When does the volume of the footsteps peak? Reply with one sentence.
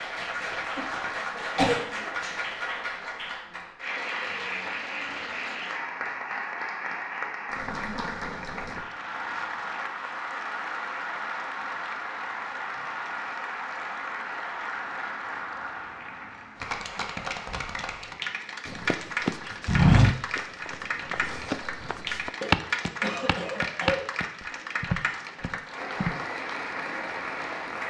The volume of the footsteps peaks at 20 seconds.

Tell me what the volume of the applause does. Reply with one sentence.
The loudness of the applause stays about the same.